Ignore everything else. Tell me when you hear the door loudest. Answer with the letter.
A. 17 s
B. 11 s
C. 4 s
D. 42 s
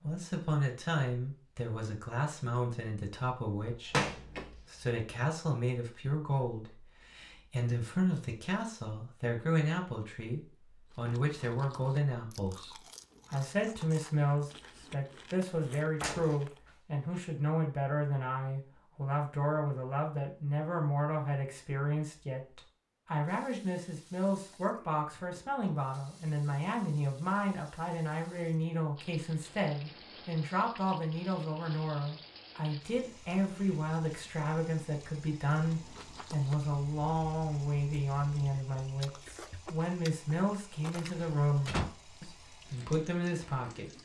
C.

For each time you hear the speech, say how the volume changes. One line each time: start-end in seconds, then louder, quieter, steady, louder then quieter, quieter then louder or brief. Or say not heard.
0.0-43.9 steady.